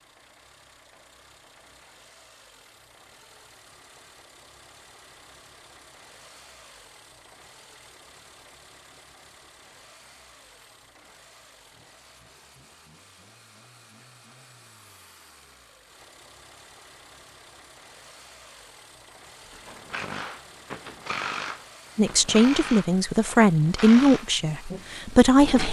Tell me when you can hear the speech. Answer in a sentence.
The speech can be heard from 21.9 to 25.6 s.